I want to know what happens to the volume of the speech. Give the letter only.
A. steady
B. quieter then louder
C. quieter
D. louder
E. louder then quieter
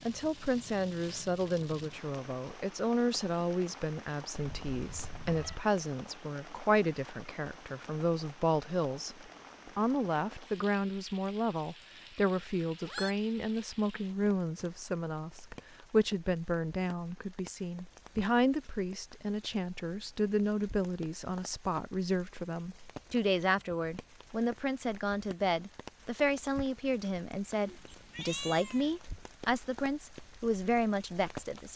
A.